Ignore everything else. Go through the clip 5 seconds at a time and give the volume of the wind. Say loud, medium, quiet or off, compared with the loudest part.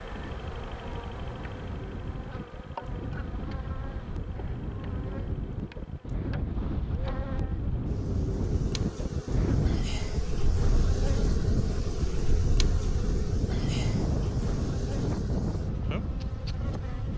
medium, loud, loud, loud.